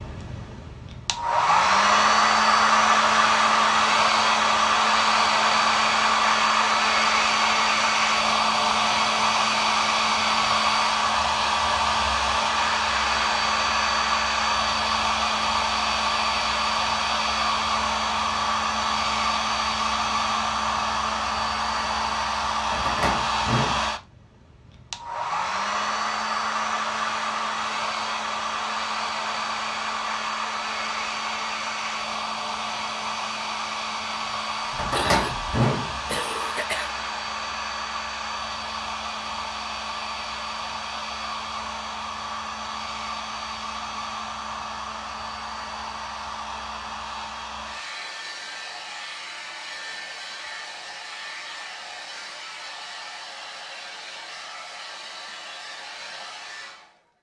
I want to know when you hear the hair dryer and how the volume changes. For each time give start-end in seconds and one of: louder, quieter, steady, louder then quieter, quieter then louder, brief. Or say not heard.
0.0-57.0 quieter.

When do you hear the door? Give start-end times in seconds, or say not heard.
22.7-23.8, 34.8-36.5.